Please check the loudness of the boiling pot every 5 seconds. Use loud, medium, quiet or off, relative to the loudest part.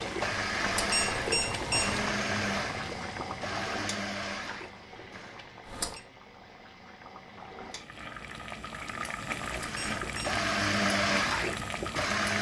loud, medium, loud.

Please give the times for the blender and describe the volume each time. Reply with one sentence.
The blender can be heard from 0.0 to 5.5 s, getting quieter; and briefly from 9.5 to 12.3 s.